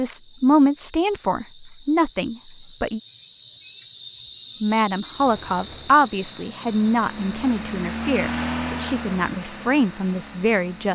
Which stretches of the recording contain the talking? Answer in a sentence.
The talking can be heard from 0.0 to 3.0 s and from 4.6 to 10.9 s.